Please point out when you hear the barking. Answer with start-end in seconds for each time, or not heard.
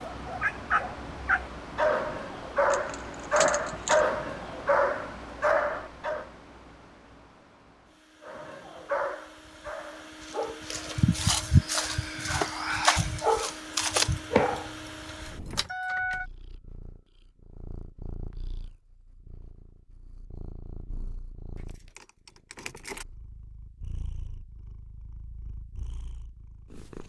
0.0-6.3, 8.2-14.7.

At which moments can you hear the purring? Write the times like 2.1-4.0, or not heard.
16.0-27.0.